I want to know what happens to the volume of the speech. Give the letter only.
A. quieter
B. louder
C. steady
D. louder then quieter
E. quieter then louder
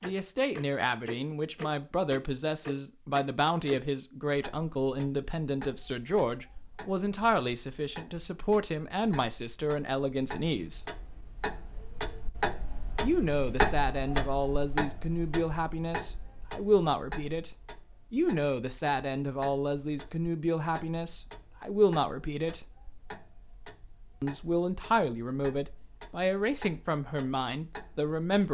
C.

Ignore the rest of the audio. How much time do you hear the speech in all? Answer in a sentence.
The speech can be heard for 25 seconds in total.